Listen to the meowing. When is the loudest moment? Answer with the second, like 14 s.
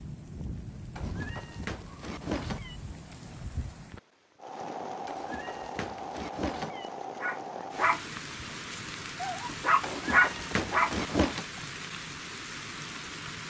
11 s.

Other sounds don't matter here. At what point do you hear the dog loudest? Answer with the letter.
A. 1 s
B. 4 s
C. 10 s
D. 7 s
C.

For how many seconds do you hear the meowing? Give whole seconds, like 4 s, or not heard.
5 s.